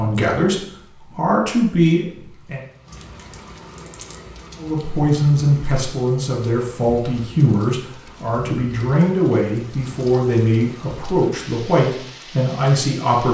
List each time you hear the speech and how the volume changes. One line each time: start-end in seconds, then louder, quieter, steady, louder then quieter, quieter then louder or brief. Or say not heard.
0.0-2.6 brief
4.5-13.2 steady.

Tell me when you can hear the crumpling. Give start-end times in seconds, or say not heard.
2.9-4.2.